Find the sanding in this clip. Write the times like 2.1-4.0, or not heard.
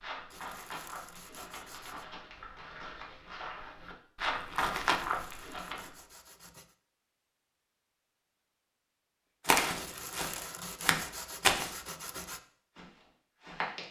0.3-2.0, 5.0-6.8, 9.8-12.4.